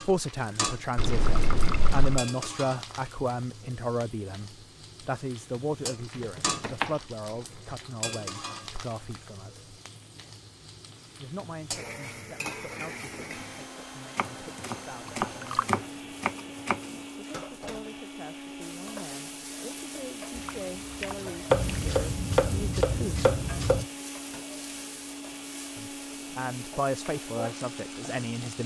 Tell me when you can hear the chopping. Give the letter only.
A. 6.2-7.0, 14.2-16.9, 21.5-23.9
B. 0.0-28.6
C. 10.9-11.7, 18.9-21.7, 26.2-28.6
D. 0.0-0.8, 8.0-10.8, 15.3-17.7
A.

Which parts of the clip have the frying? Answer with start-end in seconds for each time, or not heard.
0.0-28.6.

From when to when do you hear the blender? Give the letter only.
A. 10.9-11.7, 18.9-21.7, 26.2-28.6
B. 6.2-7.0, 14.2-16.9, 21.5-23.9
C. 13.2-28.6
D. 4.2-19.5
C.